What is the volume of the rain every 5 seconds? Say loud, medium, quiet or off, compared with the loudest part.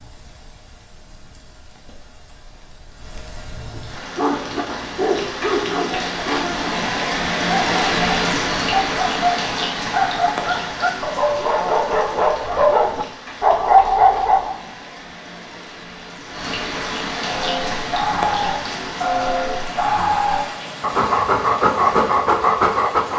quiet, loud, medium, medium, medium.